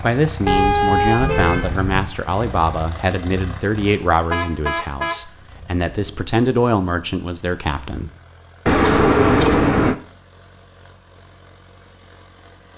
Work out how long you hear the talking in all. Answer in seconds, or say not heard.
8 s.